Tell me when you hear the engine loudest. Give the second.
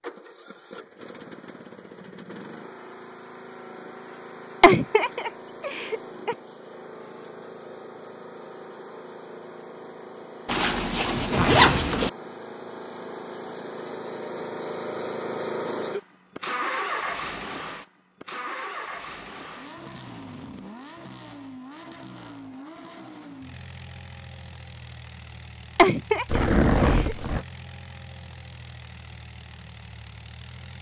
17 s.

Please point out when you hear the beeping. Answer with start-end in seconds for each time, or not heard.
not heard.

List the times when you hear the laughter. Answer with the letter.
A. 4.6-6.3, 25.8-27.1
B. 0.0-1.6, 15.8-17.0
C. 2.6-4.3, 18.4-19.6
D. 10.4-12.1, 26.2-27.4
A.